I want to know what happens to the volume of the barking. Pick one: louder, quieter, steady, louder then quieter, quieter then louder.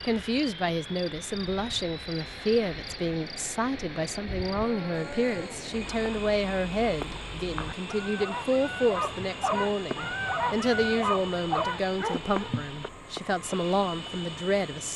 louder.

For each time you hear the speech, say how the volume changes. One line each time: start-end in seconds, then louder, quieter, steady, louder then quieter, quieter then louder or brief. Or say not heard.
0.0-14.9 steady.